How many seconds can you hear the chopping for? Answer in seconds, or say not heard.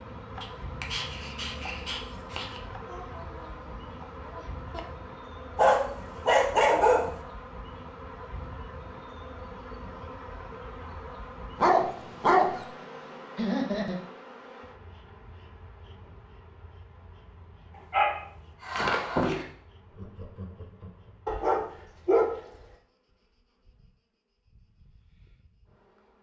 5 s.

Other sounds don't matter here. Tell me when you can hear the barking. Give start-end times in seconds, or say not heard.
0.4-2.6, 5.5-7.2, 11.6-12.7, 17.9-19.4, 21.2-22.3.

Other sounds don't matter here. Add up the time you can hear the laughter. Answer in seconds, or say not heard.
4 s.